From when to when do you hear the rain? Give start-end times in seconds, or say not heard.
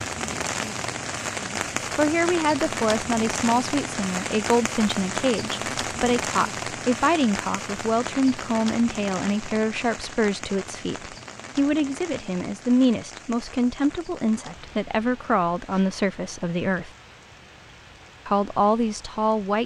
0.0-19.6.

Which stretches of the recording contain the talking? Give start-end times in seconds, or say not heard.
1.4-16.9, 18.2-19.6.